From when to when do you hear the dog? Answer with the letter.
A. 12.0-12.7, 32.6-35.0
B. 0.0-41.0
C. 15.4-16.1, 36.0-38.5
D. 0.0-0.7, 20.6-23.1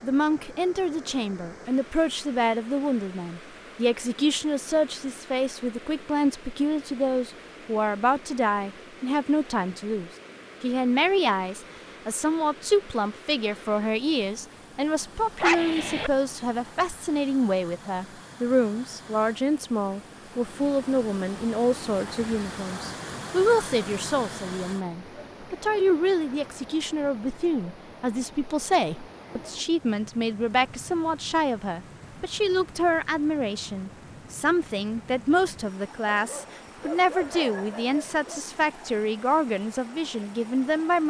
C.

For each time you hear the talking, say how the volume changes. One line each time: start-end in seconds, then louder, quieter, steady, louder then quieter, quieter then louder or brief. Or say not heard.
0.0-41.0 steady.